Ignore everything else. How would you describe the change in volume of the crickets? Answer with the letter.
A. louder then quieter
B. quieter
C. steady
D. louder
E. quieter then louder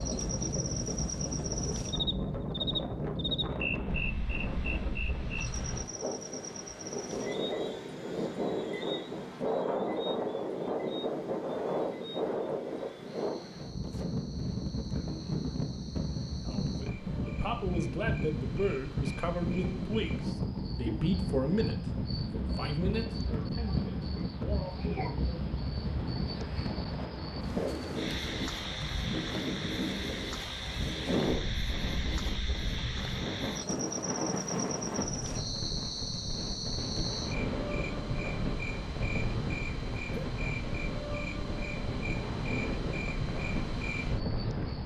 E.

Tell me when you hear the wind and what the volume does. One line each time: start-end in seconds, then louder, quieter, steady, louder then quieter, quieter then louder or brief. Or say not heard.
0.0-44.8 steady.